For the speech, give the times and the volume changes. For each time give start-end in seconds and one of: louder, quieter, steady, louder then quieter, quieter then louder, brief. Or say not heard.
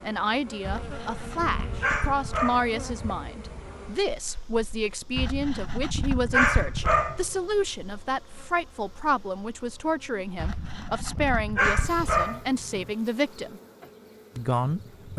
0.0-13.6 steady
14.3-15.1 brief.